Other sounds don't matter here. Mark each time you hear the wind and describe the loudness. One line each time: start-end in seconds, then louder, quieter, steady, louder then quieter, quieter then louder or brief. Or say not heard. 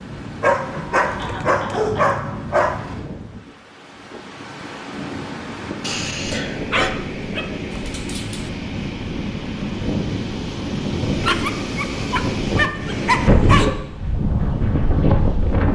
0.0-15.7 louder.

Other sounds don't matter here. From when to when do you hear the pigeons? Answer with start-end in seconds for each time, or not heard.
not heard.